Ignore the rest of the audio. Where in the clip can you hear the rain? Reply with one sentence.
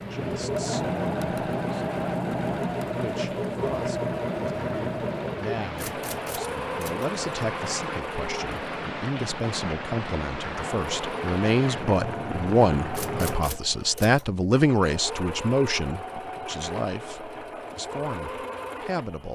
You can hear the rain from 0.0 to 13.3 s.